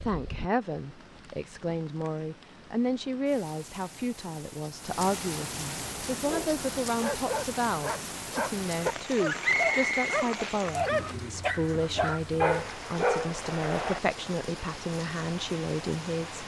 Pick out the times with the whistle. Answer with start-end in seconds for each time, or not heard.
9.4-10.2.